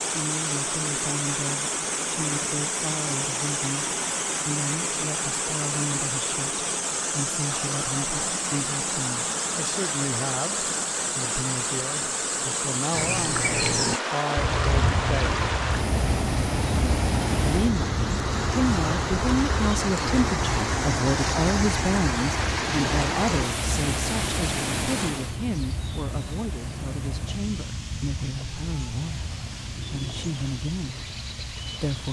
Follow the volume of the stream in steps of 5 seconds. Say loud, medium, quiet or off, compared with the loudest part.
loud, loud, loud, loud, loud, quiet, quiet.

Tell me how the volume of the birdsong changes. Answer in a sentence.
The volume of the birdsong goes down.